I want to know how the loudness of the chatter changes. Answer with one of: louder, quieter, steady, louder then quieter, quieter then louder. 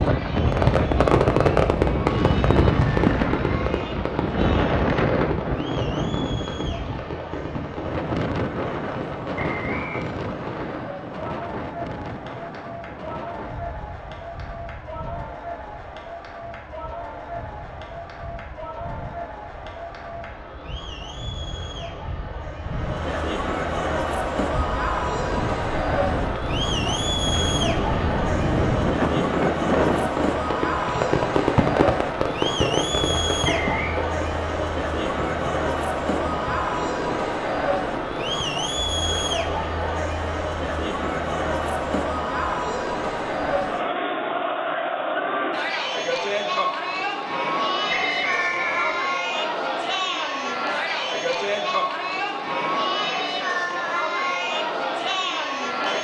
louder.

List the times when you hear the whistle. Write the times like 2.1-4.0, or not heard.
9.3-10.1, 33.5-34.0, 47.9-49.0.